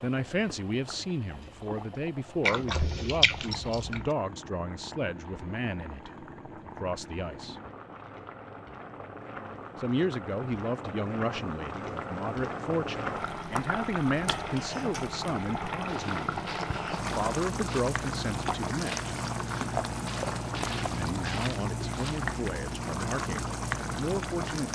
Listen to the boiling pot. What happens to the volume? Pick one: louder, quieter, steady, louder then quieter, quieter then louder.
louder.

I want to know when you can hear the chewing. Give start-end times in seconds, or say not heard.
2.4-4.0, 19.7-21.2.